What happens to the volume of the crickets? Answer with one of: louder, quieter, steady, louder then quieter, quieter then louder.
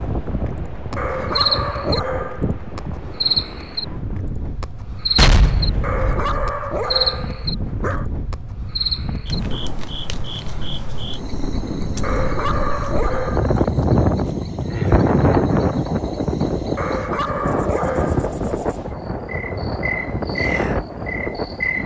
quieter then louder.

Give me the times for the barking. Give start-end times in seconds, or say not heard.
0.9-2.8, 5.8-8.1, 12.0-13.6, 16.8-18.2.